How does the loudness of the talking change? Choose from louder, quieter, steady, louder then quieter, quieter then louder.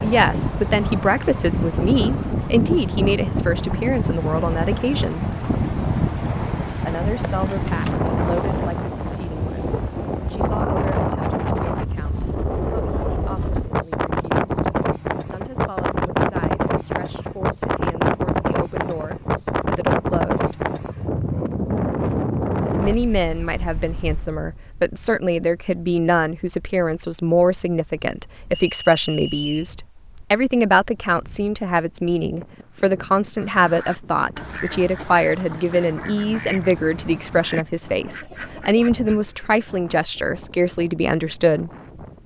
quieter then louder.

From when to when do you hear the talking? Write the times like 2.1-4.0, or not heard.
0.0-5.3, 6.8-14.7, 15.3-20.6, 22.8-41.7.